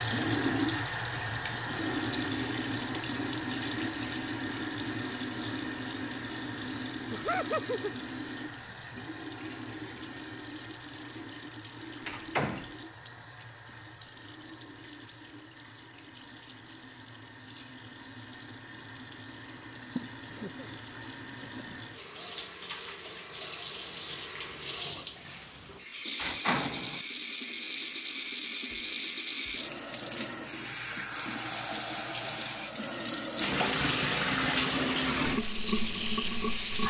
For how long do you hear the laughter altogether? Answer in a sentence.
You can hear the laughter for 2 seconds altogether.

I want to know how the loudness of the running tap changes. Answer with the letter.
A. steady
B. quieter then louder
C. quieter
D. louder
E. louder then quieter
B.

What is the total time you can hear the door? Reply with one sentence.
The door can be heard for 2 seconds in total.